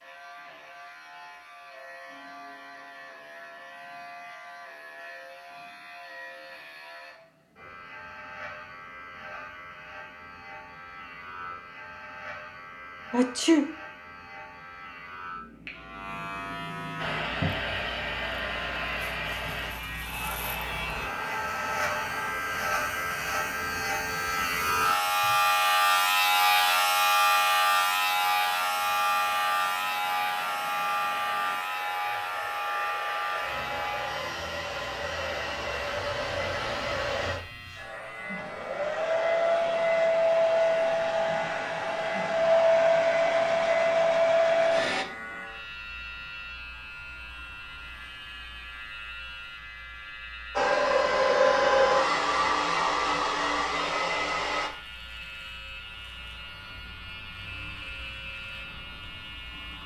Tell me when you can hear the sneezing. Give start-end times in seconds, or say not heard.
13.1-13.7.